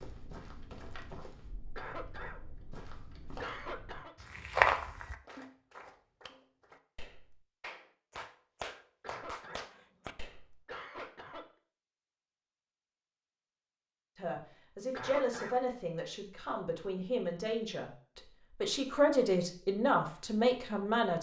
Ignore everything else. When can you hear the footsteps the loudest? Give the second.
5 s.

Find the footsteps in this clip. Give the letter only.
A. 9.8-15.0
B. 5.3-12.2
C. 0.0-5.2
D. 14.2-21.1
C.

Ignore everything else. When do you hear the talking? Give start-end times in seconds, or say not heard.
14.2-21.1.